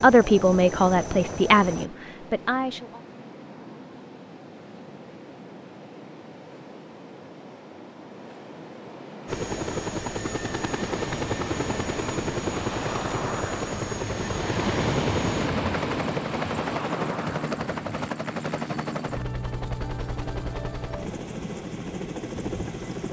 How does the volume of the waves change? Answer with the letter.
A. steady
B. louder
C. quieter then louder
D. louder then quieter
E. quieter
B.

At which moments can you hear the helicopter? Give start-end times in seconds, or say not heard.
0.0-1.9, 9.2-23.0.